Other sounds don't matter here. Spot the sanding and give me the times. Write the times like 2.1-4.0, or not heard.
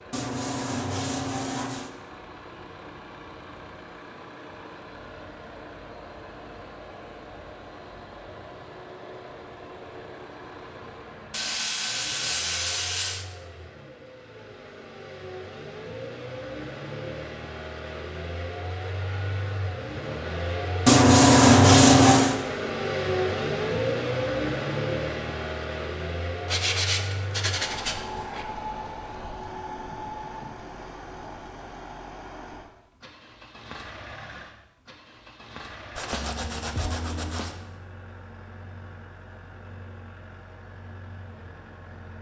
0.1-1.9, 11.3-13.2, 20.9-22.4, 26.4-28.4, 36.0-37.5.